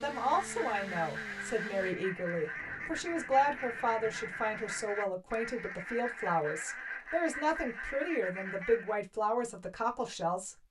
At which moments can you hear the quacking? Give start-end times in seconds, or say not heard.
0.1-9.0.